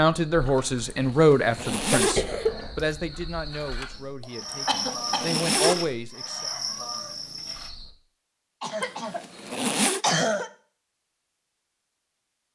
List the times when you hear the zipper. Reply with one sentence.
You can hear the zipper from 0.9 to 2.3 s, from 4.5 to 5.9 s and from 8.8 to 10.1 s.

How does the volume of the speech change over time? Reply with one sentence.
The loudness of the speech goes down, then up.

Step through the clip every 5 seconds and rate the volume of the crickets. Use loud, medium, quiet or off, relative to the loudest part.
medium, loud, off.